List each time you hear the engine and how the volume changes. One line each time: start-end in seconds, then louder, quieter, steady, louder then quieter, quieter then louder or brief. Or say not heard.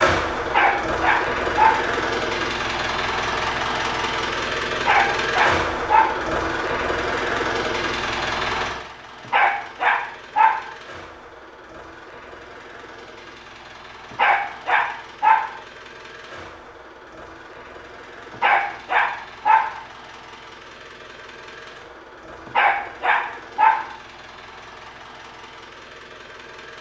0.0-26.7 quieter.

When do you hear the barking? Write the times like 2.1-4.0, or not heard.
0.5-1.9, 4.8-6.2, 9.2-10.8, 14.1-15.6, 18.4-19.8, 22.4-23.9.